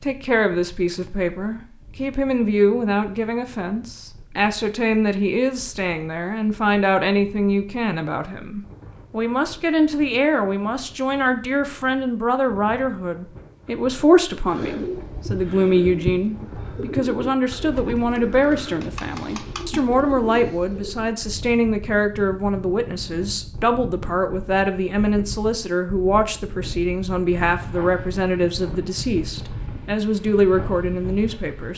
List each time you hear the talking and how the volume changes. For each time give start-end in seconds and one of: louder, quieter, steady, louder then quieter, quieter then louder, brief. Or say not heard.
0.0-31.7 steady.